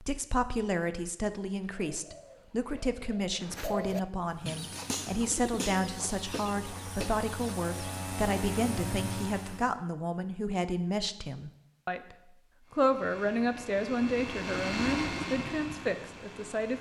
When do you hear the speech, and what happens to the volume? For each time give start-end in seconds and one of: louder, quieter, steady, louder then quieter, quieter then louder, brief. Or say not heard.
0.0-16.7 steady.